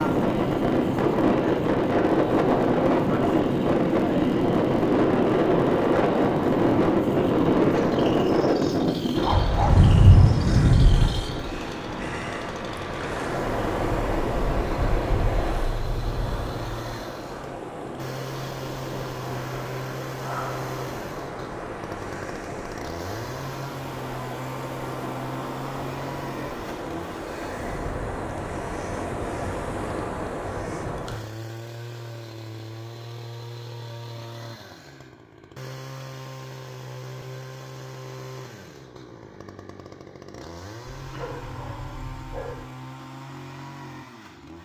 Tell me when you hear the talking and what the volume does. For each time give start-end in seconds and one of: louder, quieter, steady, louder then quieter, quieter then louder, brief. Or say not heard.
not heard.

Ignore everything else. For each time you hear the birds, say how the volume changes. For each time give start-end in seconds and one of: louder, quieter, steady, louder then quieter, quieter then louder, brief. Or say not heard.
not heard.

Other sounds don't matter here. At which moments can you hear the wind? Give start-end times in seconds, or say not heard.
0.0-31.2.